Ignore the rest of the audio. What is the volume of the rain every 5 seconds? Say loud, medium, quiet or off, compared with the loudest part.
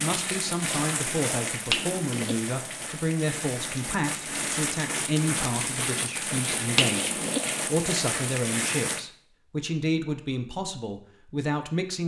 loud, loud, off.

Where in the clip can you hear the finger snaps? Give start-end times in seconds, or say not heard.
1.7-2.4, 6.8-7.4.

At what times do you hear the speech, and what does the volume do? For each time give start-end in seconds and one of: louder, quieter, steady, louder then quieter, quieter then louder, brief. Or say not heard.
0.0-12.0 steady.